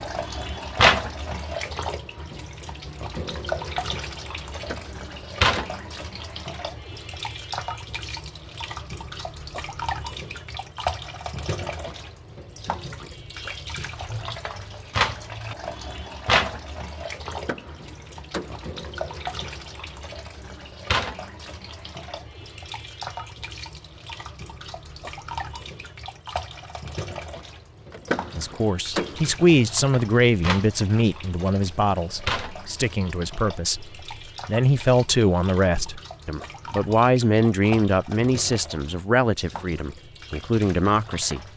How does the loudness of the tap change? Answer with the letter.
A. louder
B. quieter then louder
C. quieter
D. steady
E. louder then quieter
C.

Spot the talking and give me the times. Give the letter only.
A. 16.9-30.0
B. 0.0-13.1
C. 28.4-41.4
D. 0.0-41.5
C.